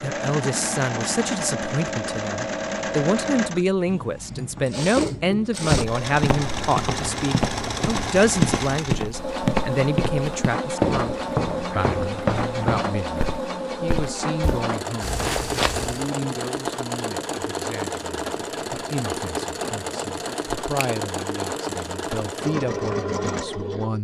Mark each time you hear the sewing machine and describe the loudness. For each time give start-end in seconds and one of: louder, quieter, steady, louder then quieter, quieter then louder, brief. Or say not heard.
0.0-23.9 steady.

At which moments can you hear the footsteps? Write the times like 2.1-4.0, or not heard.
5.7-16.1.